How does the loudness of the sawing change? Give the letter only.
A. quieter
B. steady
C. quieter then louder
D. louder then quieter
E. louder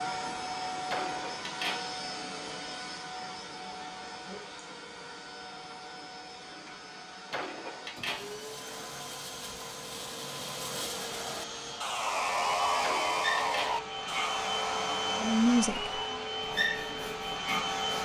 D.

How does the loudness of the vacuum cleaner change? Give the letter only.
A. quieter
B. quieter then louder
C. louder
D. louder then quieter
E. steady
B.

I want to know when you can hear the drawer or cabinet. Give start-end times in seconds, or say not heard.
0.9-1.9, 7.3-8.3, 12.8-13.8.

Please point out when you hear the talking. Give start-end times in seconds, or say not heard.
15.2-16.0.